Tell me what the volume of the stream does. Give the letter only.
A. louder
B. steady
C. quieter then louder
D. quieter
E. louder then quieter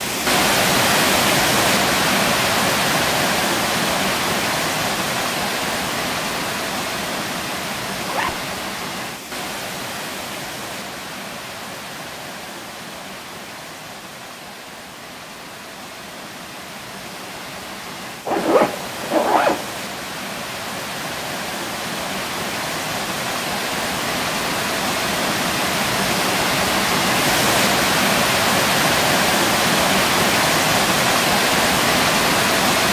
C.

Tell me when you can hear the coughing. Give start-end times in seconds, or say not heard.
not heard.